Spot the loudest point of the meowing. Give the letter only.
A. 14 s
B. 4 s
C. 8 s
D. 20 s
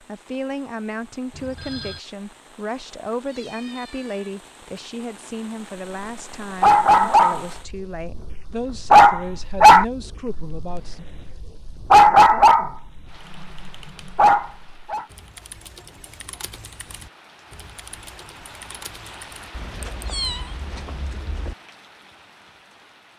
D.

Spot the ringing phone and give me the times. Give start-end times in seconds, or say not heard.
1.3-2.0.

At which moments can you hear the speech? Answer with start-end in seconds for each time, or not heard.
0.0-11.1.